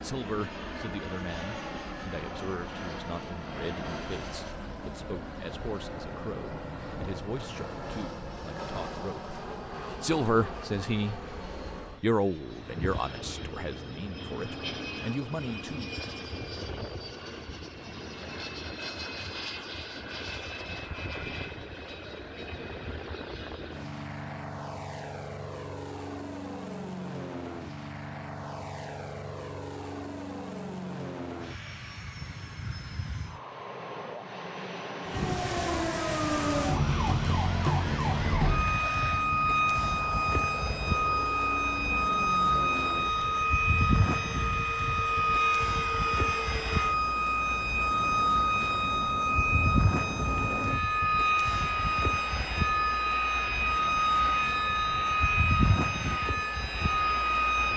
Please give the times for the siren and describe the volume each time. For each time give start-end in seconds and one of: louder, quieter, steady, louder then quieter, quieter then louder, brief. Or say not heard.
35.0-57.7 steady.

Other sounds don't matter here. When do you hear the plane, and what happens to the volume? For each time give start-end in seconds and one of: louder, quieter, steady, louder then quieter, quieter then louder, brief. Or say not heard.
0.0-57.7 steady.